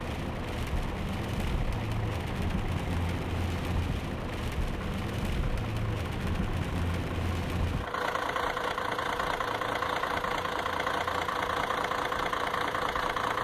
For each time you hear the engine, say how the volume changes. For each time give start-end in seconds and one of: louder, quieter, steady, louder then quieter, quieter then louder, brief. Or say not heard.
0.0-13.3 louder.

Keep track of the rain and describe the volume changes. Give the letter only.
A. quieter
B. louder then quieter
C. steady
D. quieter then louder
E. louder
A.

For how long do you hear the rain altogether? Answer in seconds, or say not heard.
13 s.